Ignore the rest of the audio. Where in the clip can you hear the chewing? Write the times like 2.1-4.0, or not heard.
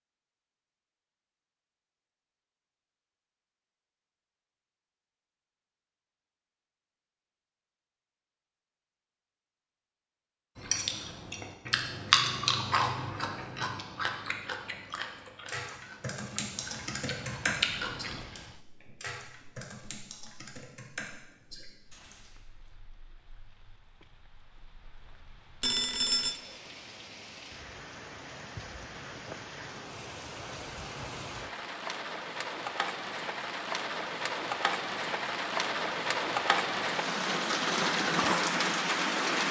10.6-18.2.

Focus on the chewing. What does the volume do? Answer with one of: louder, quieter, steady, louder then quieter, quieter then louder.
quieter then louder.